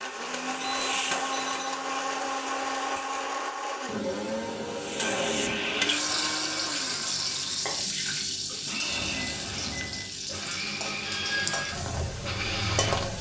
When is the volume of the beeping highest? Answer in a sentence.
The volume of the beeping peaks at 5 seconds.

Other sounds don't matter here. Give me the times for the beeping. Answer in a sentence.
You can hear the beeping from 0.2 to 2.2 s, from 5.0 to 6.0 s and from 8.8 to 10.2 s.